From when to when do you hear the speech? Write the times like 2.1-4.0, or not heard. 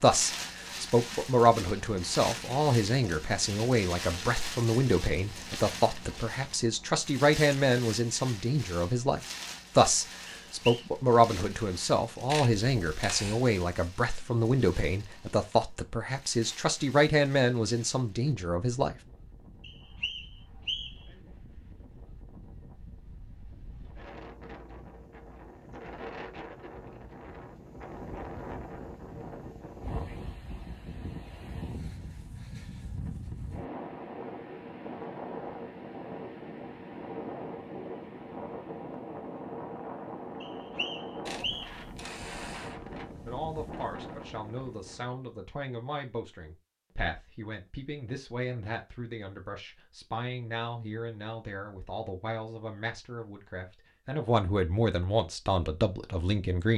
0.0-18.9, 43.2-56.7.